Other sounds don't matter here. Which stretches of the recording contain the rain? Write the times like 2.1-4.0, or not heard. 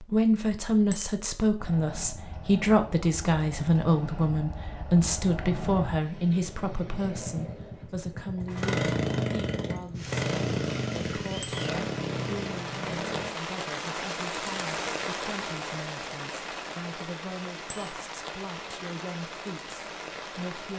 9.9-20.7.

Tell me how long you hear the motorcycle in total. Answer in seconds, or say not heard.
12 s.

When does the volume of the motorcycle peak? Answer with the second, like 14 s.
9 s.